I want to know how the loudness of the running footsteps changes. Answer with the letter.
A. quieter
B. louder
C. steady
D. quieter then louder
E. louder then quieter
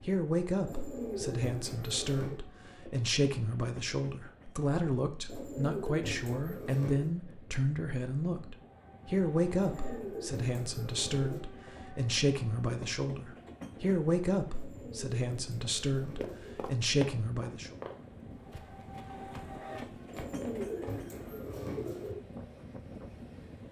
D.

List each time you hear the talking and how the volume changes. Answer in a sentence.
You can hear the talking from 0.0 to 17.8 s, at a steady volume.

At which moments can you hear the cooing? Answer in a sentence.
The cooing can be heard from 0.7 to 2.4 s, from 5.2 to 7.1 s, from 9.6 to 11.4 s, from 14.5 to 16.6 s and from 20.1 to 22.1 s.